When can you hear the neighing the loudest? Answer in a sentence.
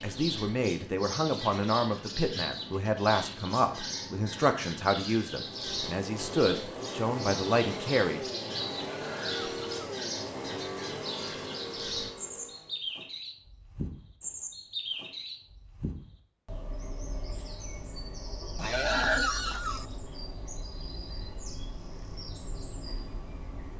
The loudest moment of the neighing is at 19 seconds.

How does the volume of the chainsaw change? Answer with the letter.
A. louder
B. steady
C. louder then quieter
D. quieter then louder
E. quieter
B.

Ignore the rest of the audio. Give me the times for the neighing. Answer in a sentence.
The neighing can be heard from 8.7 to 9.8 s and from 18.6 to 19.9 s.